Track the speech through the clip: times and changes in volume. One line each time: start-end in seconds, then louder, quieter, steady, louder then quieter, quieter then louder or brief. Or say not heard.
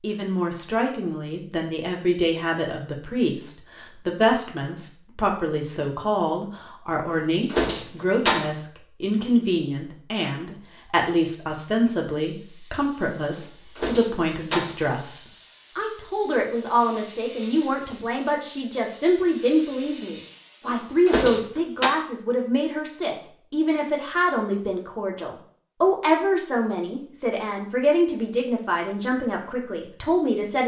0.0-30.6 steady.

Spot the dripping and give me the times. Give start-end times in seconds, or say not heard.
not heard.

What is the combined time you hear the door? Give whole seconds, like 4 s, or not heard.
4 s.